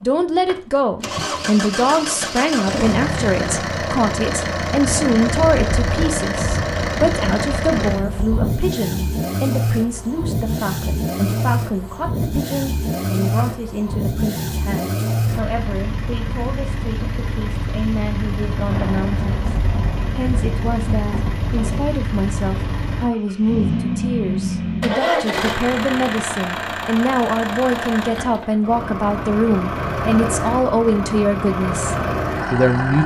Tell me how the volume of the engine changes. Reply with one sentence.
The loudness of the engine stays about the same.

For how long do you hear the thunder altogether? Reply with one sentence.
The thunder can be heard for 7 seconds in total.